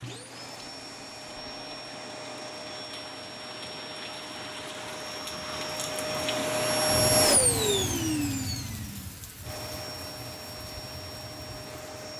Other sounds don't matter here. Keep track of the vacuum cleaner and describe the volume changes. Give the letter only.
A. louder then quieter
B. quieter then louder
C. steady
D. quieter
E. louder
A.